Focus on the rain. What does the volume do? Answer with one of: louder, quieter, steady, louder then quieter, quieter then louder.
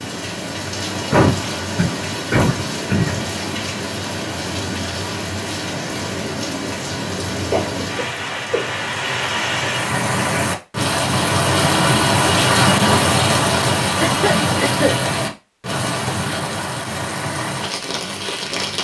louder then quieter.